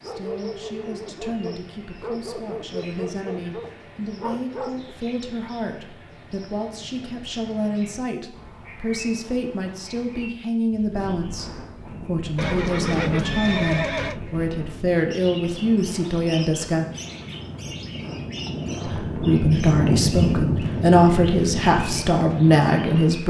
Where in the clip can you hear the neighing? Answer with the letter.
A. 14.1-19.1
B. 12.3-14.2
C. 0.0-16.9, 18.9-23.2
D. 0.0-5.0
B.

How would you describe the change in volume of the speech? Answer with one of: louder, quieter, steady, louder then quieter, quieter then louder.
louder.